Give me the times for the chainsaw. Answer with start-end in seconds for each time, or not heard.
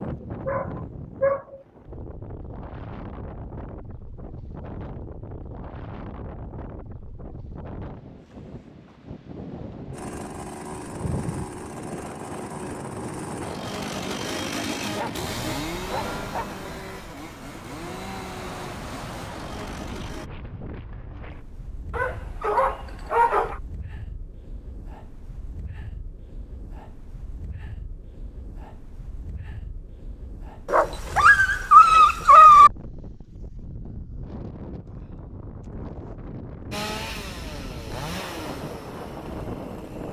9.9-20.3, 36.7-40.0.